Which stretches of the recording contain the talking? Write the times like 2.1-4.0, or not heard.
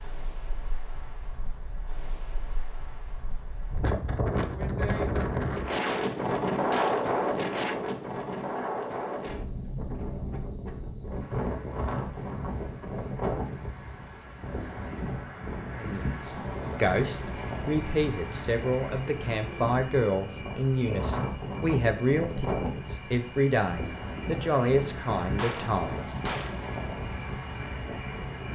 15.8-26.2.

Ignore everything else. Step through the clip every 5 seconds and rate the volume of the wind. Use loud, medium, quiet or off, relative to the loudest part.
medium, loud, medium, medium, medium, medium.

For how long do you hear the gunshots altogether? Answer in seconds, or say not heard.
3 s.